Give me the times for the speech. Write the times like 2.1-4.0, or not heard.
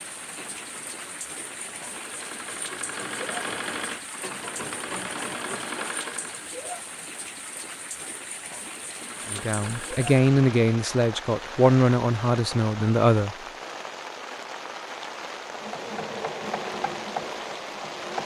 9.3-13.3.